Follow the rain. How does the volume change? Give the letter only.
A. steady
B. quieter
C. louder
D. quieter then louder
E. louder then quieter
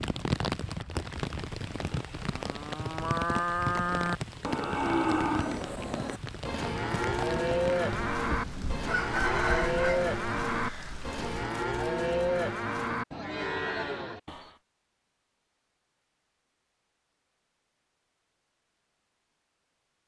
B.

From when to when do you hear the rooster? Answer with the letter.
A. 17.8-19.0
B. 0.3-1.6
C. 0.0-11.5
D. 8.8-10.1
D.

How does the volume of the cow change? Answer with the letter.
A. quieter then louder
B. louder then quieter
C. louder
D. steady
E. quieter
D.